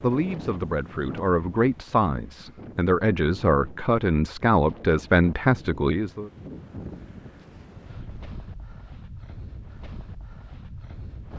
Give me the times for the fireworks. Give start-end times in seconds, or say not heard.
not heard.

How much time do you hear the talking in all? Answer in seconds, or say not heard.
6 s.